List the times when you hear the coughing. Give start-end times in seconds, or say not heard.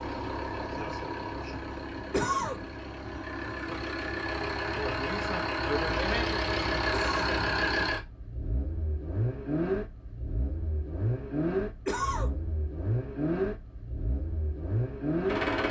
2.1-2.6, 6.9-7.4, 11.8-12.3.